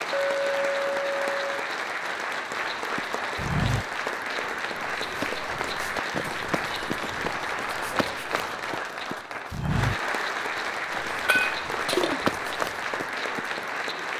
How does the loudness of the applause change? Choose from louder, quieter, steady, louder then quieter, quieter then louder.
steady.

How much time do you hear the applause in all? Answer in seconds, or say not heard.
14 s.